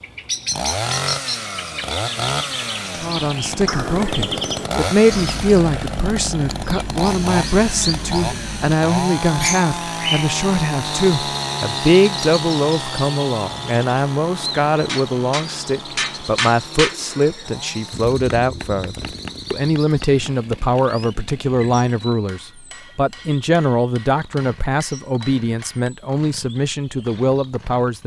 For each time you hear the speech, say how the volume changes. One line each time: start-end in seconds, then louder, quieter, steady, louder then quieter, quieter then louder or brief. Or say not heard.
3.0-28.0 steady.